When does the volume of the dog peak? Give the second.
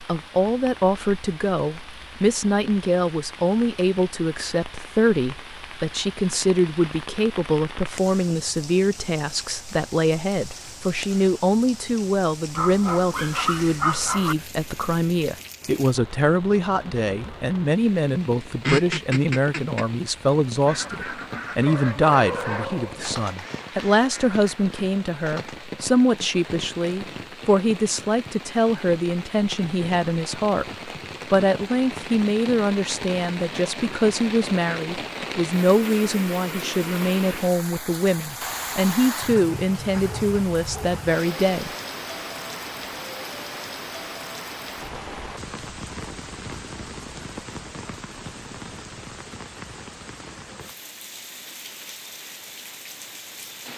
14 s.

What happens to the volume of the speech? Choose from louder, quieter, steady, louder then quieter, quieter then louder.
steady.